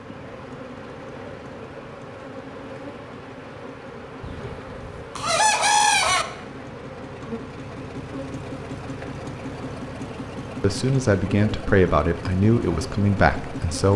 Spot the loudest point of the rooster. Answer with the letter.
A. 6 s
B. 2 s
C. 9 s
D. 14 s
A.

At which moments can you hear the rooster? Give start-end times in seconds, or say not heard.
4.2-6.2.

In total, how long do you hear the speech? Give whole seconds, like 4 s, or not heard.
3 s.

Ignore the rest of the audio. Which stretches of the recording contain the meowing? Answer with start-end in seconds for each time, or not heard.
not heard.